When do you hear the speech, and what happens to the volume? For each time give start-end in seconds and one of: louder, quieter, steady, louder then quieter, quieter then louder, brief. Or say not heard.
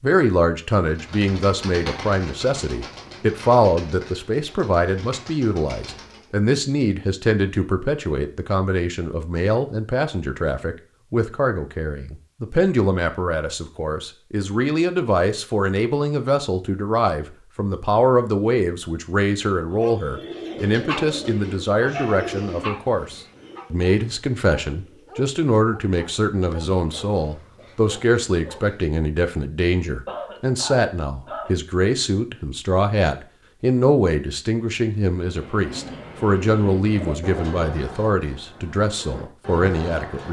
0.0-40.2 steady.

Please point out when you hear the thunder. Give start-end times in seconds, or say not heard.
not heard.